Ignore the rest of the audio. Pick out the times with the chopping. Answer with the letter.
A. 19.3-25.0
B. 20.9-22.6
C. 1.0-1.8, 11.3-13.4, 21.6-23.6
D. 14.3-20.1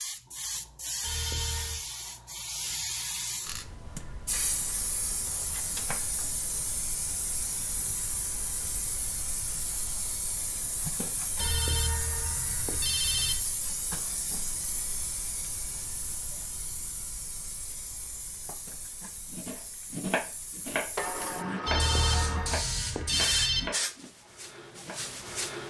A.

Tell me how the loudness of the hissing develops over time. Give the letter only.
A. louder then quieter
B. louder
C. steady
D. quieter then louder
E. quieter
D.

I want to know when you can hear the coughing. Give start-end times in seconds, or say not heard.
not heard.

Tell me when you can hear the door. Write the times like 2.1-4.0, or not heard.
20.9-22.6.